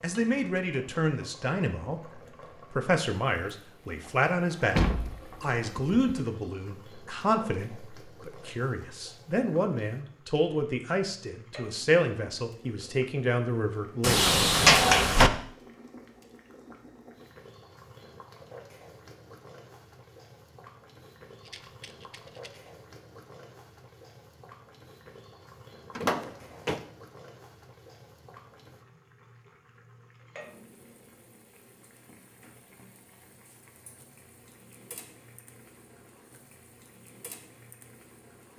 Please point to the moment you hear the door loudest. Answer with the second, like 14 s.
15 s.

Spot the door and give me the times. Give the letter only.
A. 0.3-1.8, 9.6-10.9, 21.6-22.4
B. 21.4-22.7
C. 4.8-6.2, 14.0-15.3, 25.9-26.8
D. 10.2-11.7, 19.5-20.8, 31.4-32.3
C.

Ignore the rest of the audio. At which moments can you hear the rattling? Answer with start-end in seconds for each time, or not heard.
21.4-22.7.